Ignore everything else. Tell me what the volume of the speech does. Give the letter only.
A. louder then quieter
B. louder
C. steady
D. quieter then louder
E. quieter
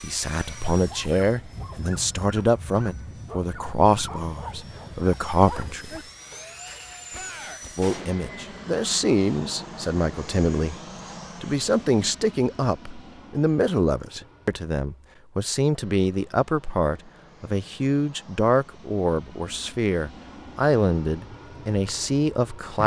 C.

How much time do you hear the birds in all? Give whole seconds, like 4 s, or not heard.
not heard.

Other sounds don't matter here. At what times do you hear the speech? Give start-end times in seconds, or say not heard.
0.0-6.0, 7.8-10.8, 11.4-22.8.